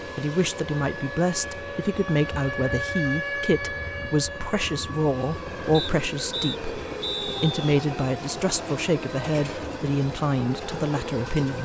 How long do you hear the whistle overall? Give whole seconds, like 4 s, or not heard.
2 s.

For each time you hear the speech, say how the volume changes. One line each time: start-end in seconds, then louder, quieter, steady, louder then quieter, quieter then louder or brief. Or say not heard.
0.1-11.5 steady.